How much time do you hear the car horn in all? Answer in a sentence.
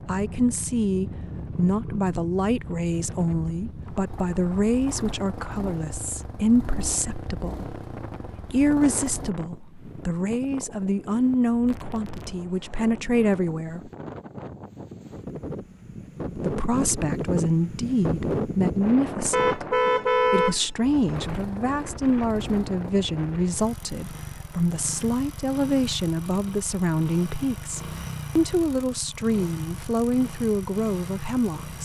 You can hear the car horn for 2 seconds altogether.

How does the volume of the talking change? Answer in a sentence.
The volume of the talking stays about the same.